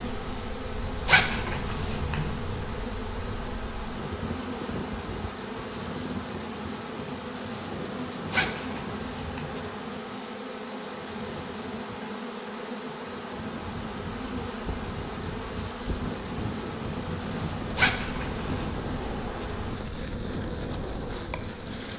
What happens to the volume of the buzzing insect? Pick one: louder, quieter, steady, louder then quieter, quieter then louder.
steady.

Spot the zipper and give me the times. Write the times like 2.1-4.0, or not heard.
1.1-2.3, 8.3-9.6, 17.8-18.8.